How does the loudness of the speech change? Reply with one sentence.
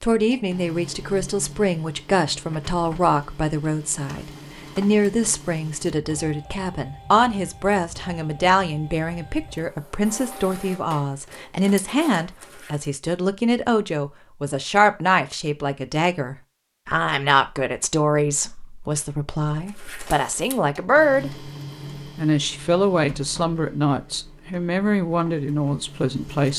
The loudness of the speech stays about the same.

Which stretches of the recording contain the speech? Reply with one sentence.
The speech can be heard from 0.0 to 21.5 s and from 22.1 to 26.5 s.